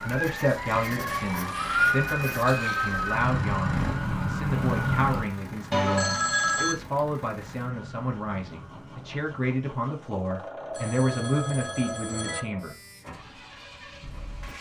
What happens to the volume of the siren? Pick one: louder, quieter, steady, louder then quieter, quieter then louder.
quieter.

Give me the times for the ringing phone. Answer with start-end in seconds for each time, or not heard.
1.1-1.9, 5.7-6.8, 10.7-12.4.